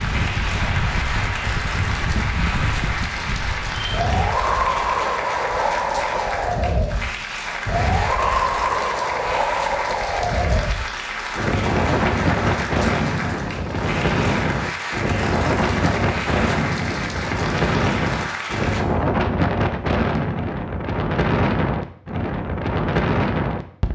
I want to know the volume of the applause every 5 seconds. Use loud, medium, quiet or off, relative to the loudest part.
loud, loud, loud, loud, off.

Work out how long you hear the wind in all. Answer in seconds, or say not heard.
24 s.